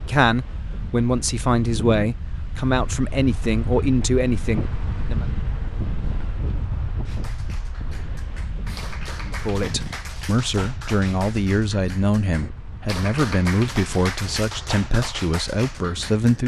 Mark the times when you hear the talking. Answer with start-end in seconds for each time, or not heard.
0.0-5.2, 9.2-16.4.